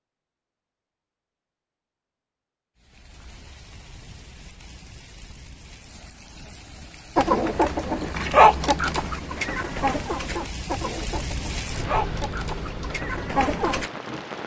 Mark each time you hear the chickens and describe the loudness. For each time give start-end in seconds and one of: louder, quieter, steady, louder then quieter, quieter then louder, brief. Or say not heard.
7.2-13.9 quieter.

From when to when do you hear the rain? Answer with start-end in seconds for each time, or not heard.
2.8-14.4.